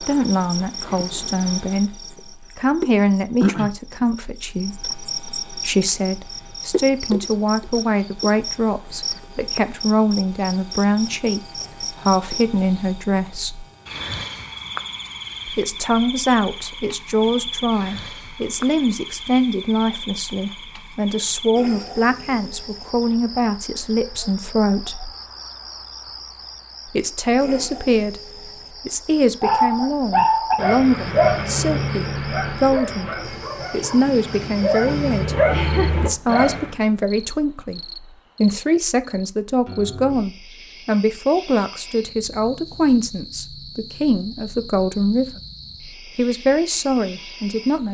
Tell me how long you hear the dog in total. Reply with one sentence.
The dog can be heard for 7 seconds in total.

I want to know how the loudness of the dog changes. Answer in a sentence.
The loudness of the dog goes down, then up.